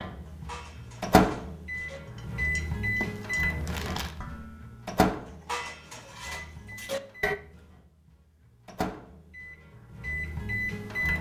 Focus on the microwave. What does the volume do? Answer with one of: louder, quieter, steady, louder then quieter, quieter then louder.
quieter then louder.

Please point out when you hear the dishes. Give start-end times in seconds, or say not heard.
0.2-7.3.